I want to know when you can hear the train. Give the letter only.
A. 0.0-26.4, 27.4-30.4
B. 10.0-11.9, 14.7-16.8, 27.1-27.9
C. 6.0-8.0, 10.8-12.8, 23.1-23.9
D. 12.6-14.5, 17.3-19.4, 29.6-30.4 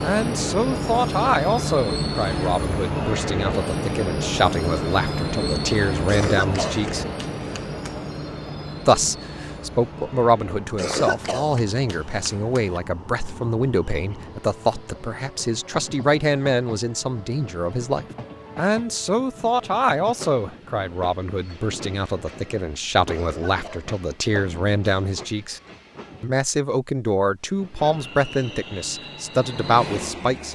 A.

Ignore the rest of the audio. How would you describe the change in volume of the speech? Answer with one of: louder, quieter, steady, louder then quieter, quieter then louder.
steady.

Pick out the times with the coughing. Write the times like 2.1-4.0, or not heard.
6.0-8.0, 10.8-12.8, 23.1-23.9.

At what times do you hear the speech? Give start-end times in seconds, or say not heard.
0.0-7.0, 8.8-25.6, 26.2-30.4.